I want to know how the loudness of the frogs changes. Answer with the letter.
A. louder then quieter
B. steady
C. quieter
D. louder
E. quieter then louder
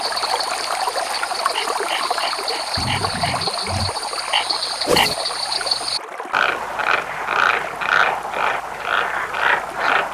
D.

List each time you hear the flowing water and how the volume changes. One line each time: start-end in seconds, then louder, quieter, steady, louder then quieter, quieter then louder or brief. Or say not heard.
0.0-10.0 quieter.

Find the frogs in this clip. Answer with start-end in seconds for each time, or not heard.
0.0-10.0.